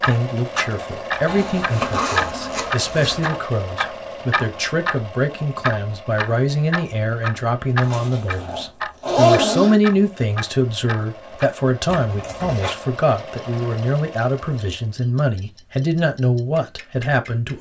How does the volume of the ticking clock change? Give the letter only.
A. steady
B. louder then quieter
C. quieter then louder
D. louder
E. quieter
E.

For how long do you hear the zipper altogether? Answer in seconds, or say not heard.
5 s.